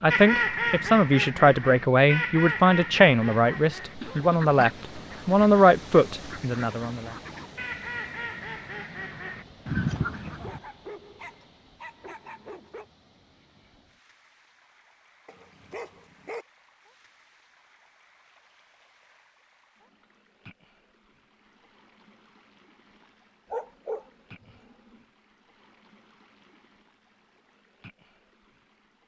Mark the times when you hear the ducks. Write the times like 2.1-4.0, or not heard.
0.1-10.6.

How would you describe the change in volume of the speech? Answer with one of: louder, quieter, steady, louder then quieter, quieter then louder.
steady.